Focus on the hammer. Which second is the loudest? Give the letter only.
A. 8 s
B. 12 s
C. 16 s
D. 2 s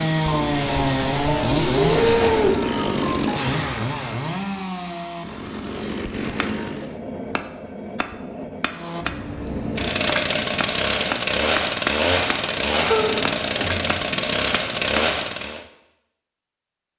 B.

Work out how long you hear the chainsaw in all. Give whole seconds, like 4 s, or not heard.
14 s.